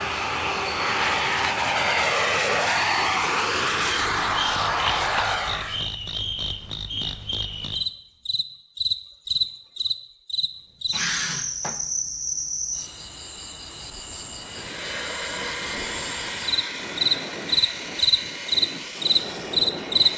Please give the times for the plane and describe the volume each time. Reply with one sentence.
The plane can be heard from 0.0 to 5.8 s, at a steady volume; and from 14.3 to 20.1 s, at a steady volume.